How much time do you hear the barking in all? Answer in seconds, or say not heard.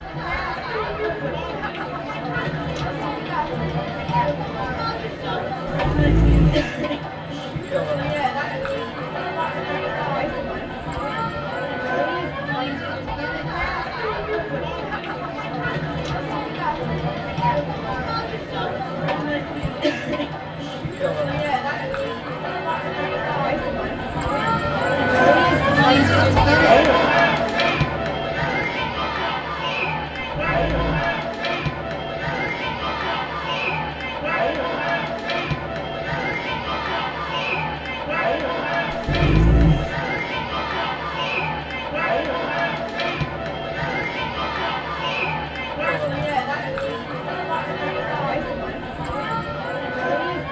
3 s.